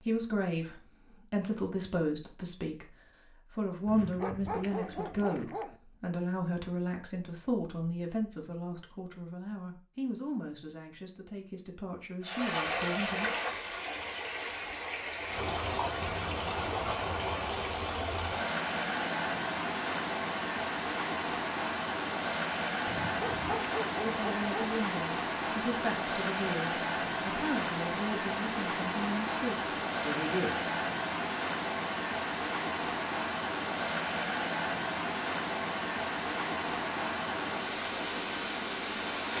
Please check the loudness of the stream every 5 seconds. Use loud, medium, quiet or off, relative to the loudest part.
off, off, loud, loud, loud, loud, loud, loud.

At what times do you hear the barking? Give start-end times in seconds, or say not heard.
3.9-5.8, 22.9-24.8.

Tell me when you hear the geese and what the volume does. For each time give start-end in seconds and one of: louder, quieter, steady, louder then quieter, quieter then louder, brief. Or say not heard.
not heard.